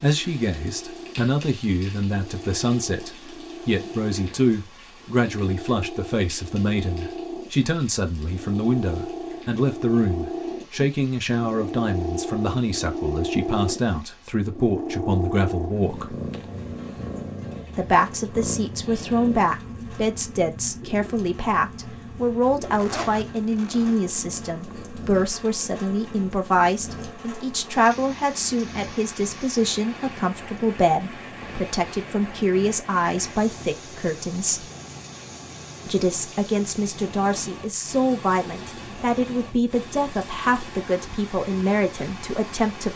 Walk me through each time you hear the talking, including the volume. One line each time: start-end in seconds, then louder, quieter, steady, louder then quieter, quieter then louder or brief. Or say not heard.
0.0-16.1 steady
17.8-34.6 steady
35.9-42.9 steady.